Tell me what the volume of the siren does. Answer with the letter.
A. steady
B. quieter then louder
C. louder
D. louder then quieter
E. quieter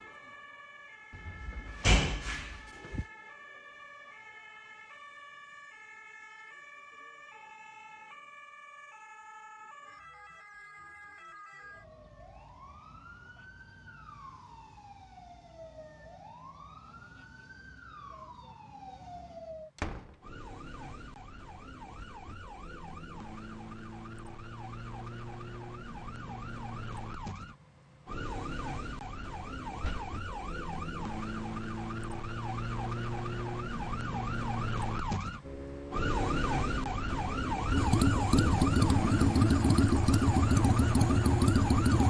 C.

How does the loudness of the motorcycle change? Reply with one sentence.
The loudness of the motorcycle goes up.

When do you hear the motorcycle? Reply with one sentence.
The motorcycle can be heard from 35.4 to 42.0 s.